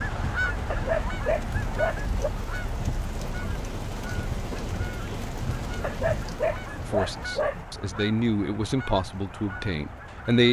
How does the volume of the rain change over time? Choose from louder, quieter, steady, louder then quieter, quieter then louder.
quieter.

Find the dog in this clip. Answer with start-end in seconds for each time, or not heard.
0.7-2.3, 5.8-7.6.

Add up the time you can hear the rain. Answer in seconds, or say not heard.
10 s.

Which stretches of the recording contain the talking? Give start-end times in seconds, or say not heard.
6.9-10.4.